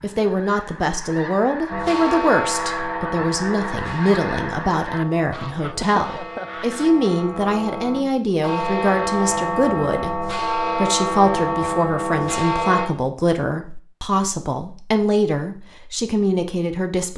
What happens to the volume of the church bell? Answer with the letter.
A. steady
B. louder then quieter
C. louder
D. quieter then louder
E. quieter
D.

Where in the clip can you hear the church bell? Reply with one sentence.
The church bell can be heard from 1.7 to 12.9 s.